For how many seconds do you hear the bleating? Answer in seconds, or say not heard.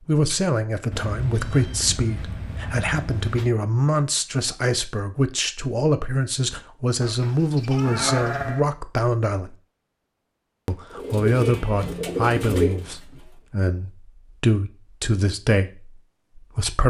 2 s.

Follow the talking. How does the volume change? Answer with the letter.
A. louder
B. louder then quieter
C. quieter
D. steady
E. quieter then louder
D.